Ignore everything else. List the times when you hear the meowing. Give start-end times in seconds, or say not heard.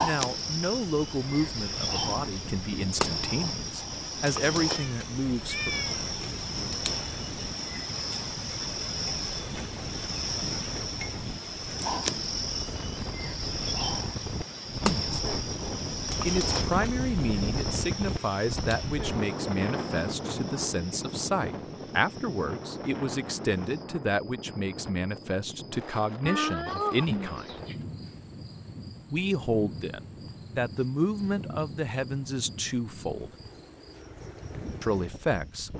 4.7-6.0, 26.2-27.8.